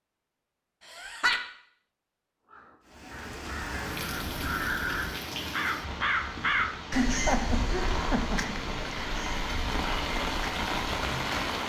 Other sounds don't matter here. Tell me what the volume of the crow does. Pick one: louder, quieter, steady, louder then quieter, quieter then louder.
louder then quieter.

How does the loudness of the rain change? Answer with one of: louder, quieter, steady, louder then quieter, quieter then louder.
louder.